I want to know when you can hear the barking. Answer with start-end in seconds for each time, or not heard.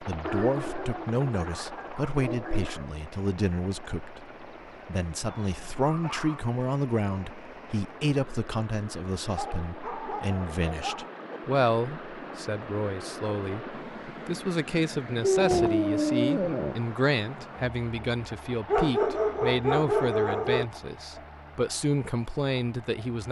0.2-2.9, 5.2-6.4, 9.3-11.2, 15.2-16.8, 18.6-20.6.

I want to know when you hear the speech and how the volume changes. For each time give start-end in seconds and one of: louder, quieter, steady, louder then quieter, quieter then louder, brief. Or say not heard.
0.0-23.2 steady.